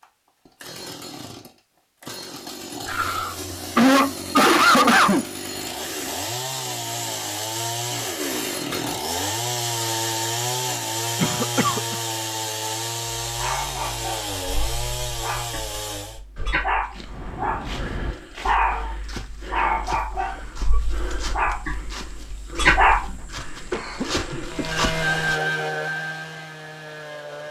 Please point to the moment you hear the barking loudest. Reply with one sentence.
The volume of the barking peaks at 23 seconds.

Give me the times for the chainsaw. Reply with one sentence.
You can hear the chainsaw from 0.0 to 16.2 s and from 24.5 to 27.4 s.